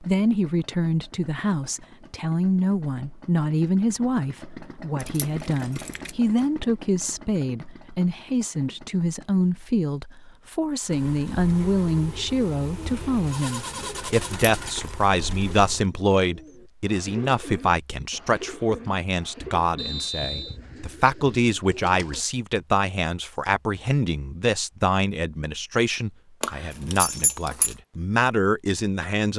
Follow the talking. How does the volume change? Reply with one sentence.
The volume of the talking stays about the same.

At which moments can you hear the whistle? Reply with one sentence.
You can hear the whistle from 19.8 to 20.6 s.